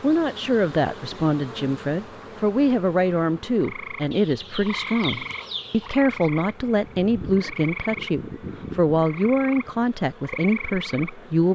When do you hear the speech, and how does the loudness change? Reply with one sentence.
The speech can be heard from 0.0 to 11.5 s, at a steady volume.